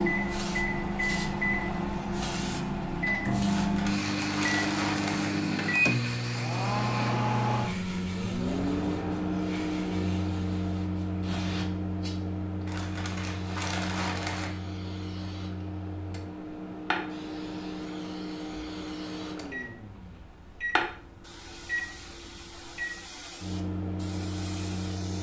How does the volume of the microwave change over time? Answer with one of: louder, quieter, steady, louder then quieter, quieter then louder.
quieter.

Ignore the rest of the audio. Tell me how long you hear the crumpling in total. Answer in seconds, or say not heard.
4 s.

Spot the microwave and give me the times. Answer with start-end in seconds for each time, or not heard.
0.0-25.1.